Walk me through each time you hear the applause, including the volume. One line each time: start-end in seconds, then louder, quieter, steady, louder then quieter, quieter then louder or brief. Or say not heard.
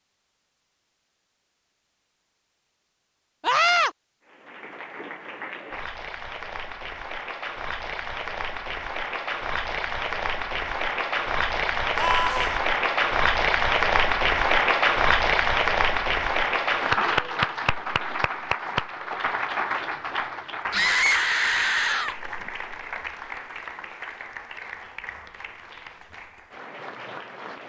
4.2-27.6 louder then quieter.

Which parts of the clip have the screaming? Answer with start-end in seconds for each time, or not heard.
3.4-3.9, 11.9-12.6, 20.7-22.1.